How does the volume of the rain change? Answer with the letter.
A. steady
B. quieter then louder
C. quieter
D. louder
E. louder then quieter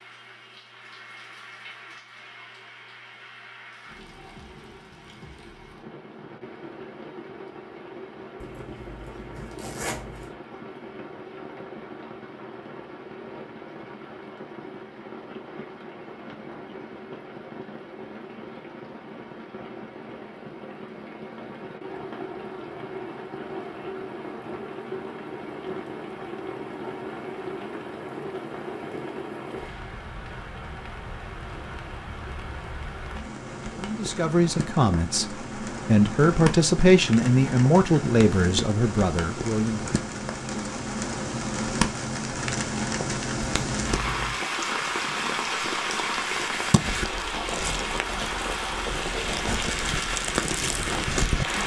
D.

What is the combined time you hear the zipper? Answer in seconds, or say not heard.
3 s.